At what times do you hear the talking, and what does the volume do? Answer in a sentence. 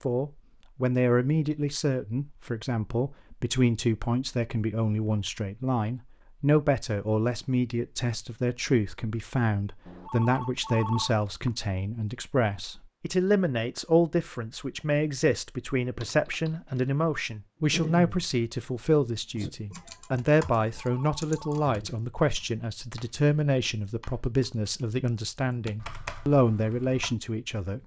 You can hear the talking from 0.0 to 27.8 s, at a steady volume.